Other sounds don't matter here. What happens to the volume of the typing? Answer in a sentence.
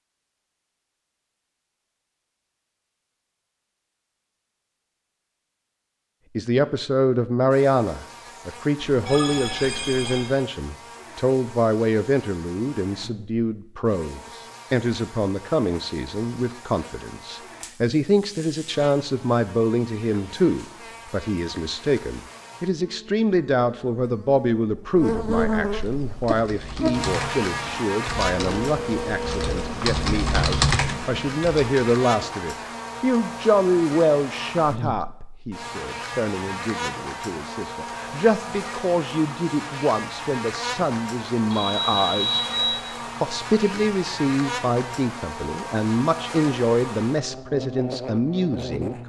The loudness of the typing goes up.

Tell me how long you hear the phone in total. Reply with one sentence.
You can hear the phone for 4 seconds altogether.